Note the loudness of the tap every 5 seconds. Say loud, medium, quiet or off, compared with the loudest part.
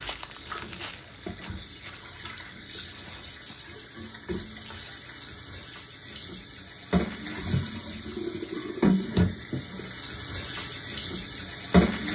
quiet, loud, loud.